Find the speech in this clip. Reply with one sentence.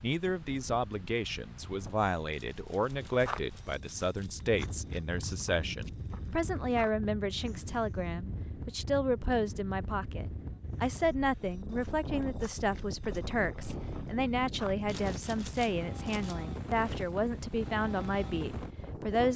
You can hear the speech from 0.0 to 19.3 s.